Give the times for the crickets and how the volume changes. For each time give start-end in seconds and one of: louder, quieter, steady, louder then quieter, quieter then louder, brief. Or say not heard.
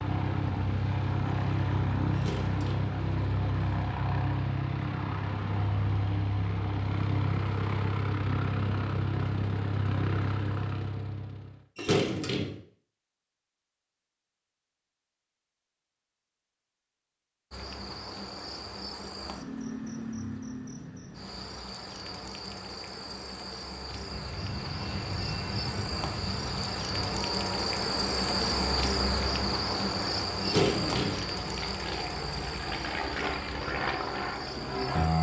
17.5-35.1 louder then quieter.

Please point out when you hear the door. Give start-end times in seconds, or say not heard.
2.1-3.0, 11.8-12.6, 30.4-31.2.